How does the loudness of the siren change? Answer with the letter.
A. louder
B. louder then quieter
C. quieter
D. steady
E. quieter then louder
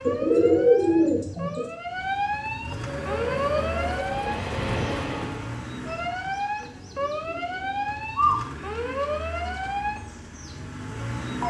D.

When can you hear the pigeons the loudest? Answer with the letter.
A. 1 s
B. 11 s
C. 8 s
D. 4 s
A.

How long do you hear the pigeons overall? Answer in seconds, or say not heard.
4 s.